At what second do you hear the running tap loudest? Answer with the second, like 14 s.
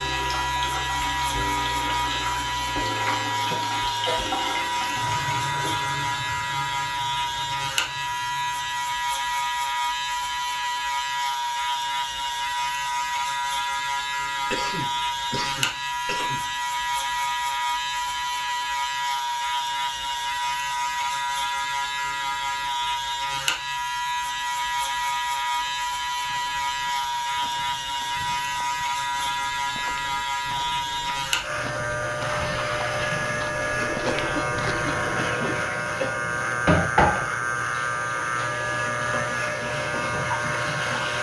37 s.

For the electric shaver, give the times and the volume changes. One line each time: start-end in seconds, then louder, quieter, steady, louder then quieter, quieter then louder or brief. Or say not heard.
0.0-41.1 steady.